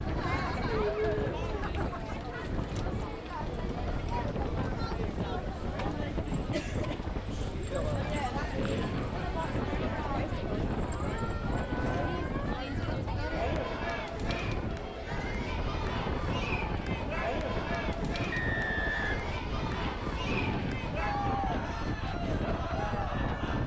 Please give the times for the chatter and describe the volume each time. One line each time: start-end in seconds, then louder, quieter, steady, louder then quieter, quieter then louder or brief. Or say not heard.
0.0-23.6 steady.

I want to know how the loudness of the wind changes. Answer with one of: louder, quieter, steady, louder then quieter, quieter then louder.
steady.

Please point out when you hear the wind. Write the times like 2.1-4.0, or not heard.
0.0-23.6.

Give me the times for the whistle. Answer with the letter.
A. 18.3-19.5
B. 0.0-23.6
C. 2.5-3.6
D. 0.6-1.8
A.